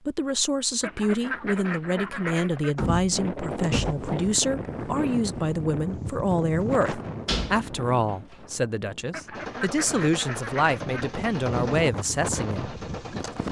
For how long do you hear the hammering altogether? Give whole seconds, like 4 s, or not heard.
not heard.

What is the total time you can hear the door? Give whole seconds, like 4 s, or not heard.
2 s.